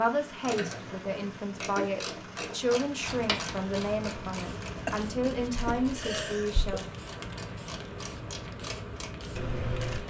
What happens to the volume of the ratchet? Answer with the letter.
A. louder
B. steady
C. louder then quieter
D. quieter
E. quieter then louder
E.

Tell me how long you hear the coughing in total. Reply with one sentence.
You can hear the coughing for 2 seconds altogether.